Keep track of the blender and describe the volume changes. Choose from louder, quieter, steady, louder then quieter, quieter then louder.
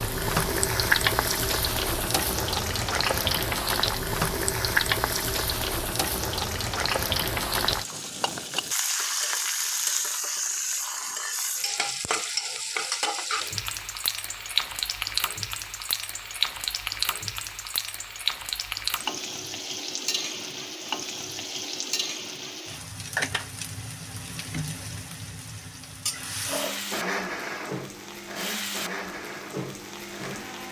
quieter.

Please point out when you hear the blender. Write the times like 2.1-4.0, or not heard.
26.4-30.6.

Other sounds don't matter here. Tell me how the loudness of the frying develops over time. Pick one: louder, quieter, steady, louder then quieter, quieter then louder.
quieter.